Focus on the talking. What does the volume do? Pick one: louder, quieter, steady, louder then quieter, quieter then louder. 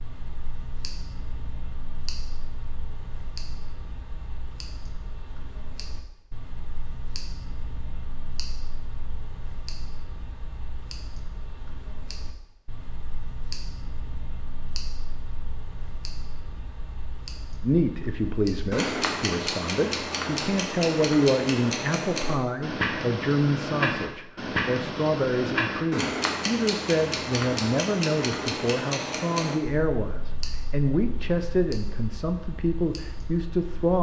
steady.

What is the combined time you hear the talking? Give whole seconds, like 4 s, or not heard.
16 s.